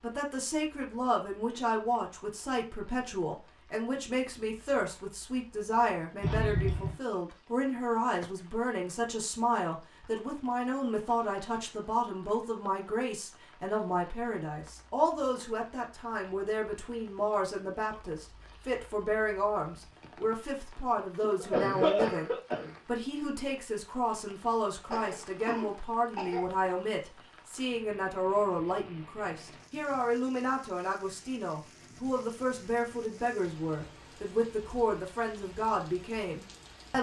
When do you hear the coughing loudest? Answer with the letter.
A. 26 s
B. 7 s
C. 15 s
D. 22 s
D.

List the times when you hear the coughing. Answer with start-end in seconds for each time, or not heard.
6.2-7.0, 21.2-22.8, 24.9-26.4.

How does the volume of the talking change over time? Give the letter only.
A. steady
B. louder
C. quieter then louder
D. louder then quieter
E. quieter
A.